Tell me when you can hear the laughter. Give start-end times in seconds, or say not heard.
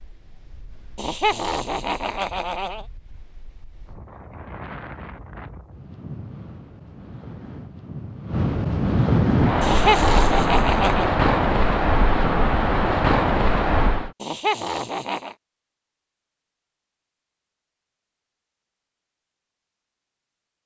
0.9-2.9, 9.6-11.1, 14.2-15.3.